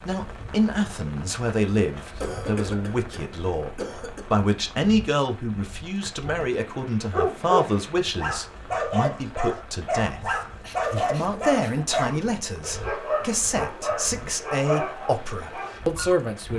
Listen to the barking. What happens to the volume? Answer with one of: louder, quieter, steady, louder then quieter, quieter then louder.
quieter.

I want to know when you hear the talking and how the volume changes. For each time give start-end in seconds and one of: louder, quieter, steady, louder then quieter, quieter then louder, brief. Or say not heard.
0.1-16.5 steady.